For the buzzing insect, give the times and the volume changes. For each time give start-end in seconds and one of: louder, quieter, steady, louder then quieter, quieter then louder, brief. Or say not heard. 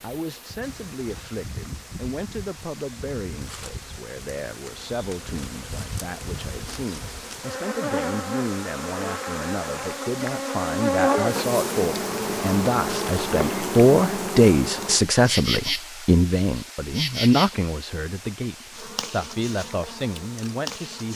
0.0-21.1 louder then quieter.